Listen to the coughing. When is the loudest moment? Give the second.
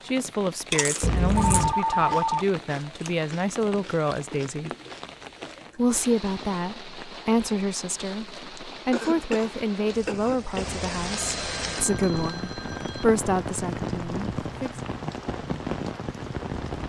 1 s.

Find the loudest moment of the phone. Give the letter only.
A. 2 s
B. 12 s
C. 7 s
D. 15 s
A.